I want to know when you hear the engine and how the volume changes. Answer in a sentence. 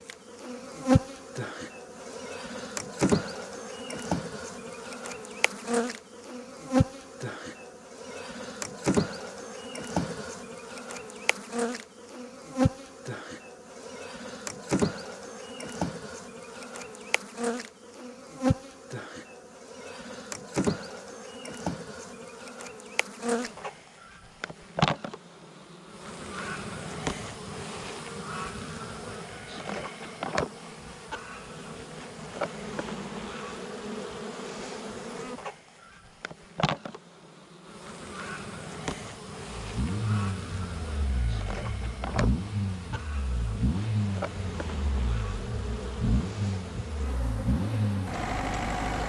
The engine can be heard from 39.5 to 49.0 s, at a steady volume.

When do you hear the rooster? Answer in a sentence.
You can't hear the rooster here.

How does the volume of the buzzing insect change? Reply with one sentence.
The loudness of the buzzing insect goes down.